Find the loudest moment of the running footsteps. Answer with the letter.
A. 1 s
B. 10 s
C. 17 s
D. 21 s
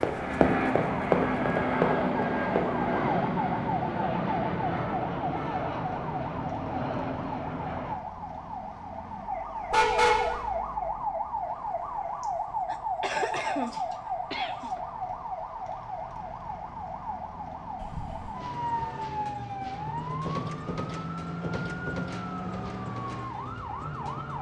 A.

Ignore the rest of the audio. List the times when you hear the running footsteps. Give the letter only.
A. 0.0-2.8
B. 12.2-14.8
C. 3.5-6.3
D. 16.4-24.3
A.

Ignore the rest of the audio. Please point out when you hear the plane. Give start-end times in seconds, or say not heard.
0.0-8.0.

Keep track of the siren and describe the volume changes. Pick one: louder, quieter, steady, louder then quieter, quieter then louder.
steady.